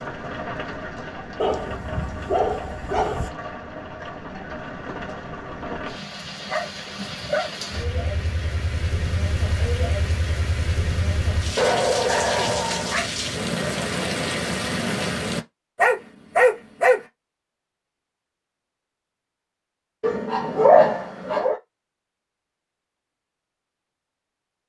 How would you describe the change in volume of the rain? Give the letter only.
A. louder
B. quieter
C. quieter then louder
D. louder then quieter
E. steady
A.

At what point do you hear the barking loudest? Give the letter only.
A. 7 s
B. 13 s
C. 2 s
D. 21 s
D.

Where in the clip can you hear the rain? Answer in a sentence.
You can hear the rain from 0.0 to 15.4 s.